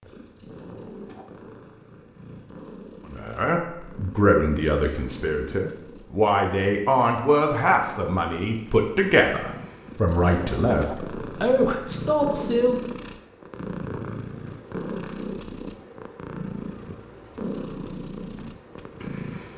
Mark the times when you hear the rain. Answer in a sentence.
You can't hear the rain here.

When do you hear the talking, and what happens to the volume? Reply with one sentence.
You can hear the talking from 3.0 to 12.8 s, at a steady volume.